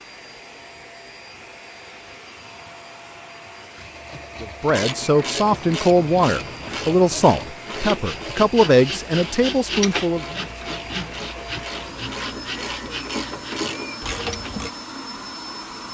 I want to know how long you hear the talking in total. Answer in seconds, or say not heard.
6 s.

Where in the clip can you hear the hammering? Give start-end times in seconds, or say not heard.
not heard.